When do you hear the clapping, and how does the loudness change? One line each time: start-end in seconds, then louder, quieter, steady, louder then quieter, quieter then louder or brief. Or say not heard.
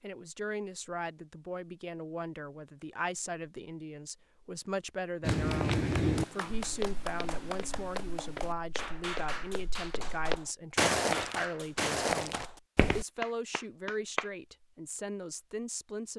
5.2-14.3 steady.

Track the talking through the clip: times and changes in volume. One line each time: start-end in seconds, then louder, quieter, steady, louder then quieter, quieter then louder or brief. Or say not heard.
0.0-16.1 steady.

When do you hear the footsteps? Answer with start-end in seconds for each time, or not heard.
5.2-13.1.